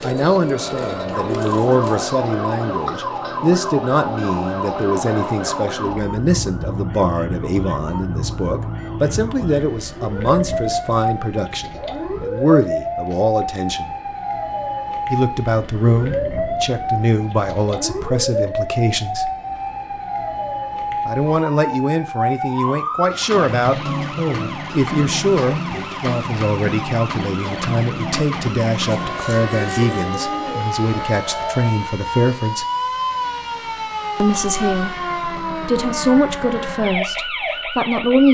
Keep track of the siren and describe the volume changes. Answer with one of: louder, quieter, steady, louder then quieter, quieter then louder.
steady.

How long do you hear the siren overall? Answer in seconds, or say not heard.
38 s.